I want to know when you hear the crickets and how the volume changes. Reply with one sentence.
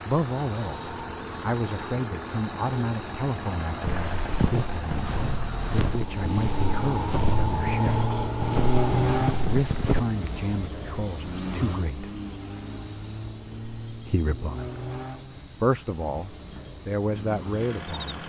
The crickets can be heard from 0.0 to 17.9 s, getting quieter.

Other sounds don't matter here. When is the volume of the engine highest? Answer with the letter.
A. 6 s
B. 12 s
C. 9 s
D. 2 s
C.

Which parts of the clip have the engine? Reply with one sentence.
You can hear the engine from 0.0 to 18.2 s.